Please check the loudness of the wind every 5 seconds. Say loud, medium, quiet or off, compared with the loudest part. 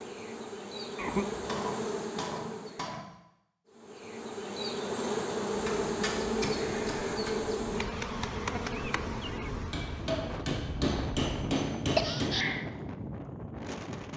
off, medium, loud.